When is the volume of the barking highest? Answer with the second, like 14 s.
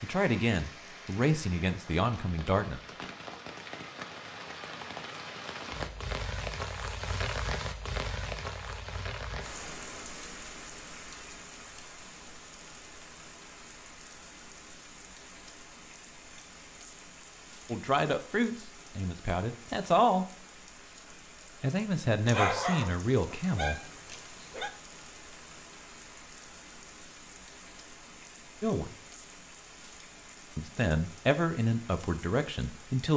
23 s.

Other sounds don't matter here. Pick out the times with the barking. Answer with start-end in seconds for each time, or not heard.
22.2-24.7.